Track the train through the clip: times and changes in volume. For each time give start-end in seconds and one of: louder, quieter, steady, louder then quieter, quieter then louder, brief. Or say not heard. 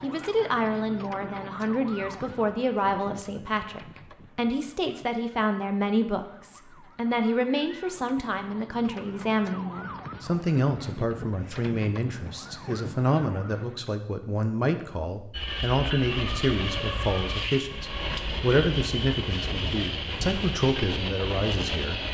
15.3-22.0 steady.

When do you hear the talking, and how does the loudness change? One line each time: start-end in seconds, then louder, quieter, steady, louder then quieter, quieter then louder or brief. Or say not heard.
0.0-22.0 steady.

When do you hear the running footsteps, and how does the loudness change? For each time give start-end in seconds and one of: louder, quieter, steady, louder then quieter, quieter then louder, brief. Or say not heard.
not heard.